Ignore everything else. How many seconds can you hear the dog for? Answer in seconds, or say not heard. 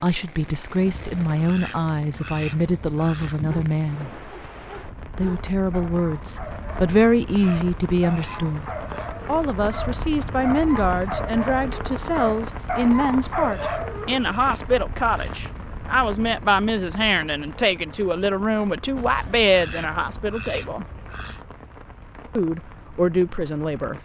11 s.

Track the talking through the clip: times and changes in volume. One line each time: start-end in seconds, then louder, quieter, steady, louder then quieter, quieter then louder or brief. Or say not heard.
0.0-4.1 steady
5.2-20.9 steady
22.4-23.9 brief.